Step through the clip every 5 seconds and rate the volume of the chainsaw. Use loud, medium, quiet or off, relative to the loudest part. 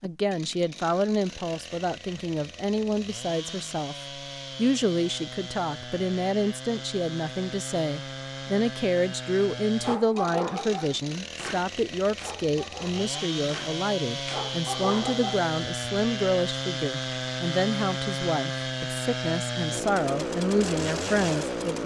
medium, medium, medium, loud, loud.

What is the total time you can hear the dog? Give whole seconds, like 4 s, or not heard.
6 s.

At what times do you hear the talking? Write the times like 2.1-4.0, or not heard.
0.0-4.0, 4.5-21.8.